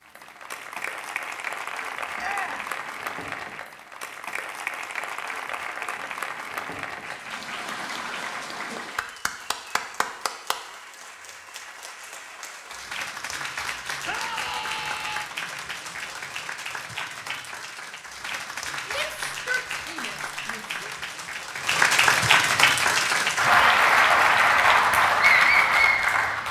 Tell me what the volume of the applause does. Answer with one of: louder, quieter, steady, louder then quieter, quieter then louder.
louder.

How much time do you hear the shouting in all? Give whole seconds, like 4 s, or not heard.
4 s.